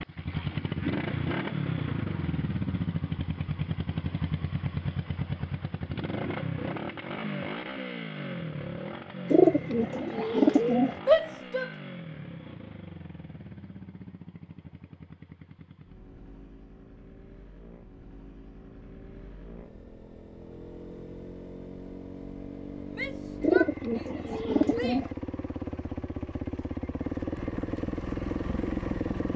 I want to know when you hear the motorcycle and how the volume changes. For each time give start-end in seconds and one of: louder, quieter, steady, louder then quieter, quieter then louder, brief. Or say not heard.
0.0-29.3 quieter then louder.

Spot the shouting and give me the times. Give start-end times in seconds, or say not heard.
11.1-11.7, 22.9-25.1.